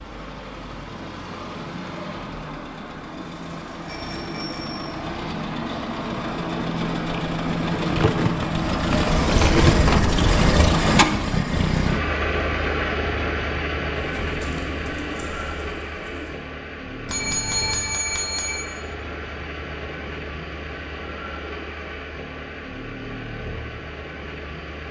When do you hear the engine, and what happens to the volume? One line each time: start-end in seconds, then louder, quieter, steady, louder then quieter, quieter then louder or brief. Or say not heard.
0.0-24.8 louder then quieter.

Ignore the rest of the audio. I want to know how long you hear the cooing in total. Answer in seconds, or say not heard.
4 s.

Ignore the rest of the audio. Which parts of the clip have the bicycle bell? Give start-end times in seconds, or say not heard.
3.9-4.9, 17.1-18.6.